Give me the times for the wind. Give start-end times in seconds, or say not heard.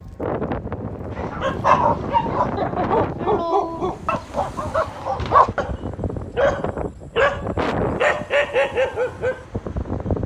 0.0-10.2.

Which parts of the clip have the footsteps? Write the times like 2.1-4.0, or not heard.
not heard.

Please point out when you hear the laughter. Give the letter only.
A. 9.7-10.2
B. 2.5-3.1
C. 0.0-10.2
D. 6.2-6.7
B.